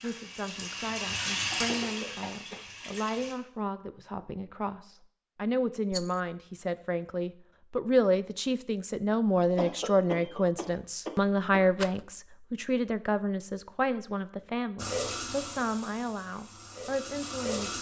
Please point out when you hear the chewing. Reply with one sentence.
The chewing can't be heard in this clip.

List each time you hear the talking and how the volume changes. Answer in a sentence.
You can hear the talking from 0.0 to 17.7 s, getting louder then quieter.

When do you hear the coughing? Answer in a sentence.
You can hear the coughing from 1.6 to 2.7 s and from 9.6 to 11.6 s.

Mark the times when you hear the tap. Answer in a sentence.
You can hear the tap from 0.0 to 3.4 s and from 14.8 to 17.7 s.